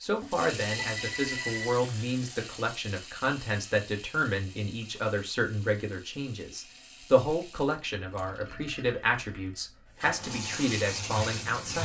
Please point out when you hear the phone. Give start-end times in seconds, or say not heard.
0.7-1.9.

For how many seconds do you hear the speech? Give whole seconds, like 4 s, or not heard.
12 s.